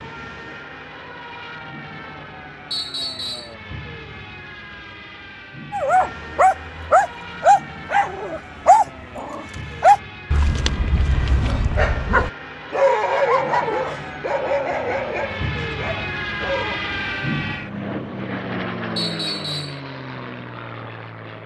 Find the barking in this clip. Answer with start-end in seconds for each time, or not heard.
5.7-16.8.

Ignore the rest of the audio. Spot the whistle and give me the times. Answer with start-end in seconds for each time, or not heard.
2.7-3.5, 18.9-19.8.